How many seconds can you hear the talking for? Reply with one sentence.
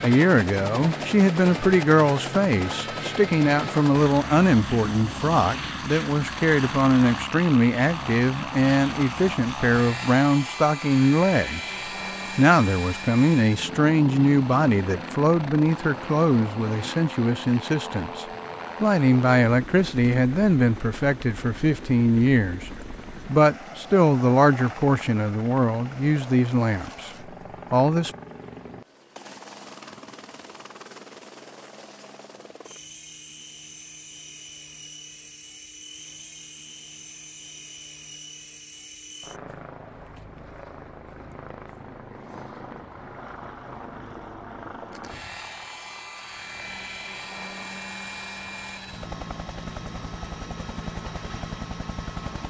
You can hear the talking for 27 seconds altogether.